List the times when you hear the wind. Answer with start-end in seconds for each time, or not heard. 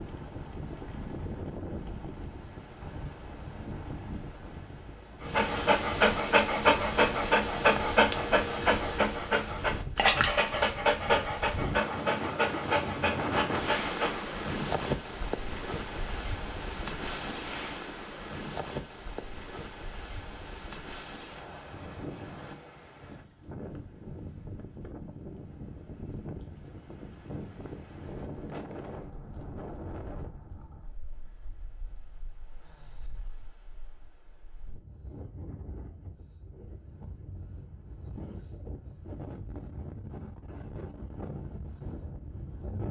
0.0-42.8.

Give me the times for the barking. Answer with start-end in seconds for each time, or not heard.
5.2-14.3.